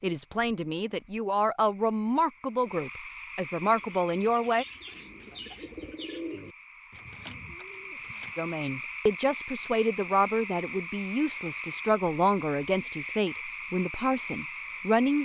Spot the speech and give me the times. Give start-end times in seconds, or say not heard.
0.0-4.7, 8.3-15.1.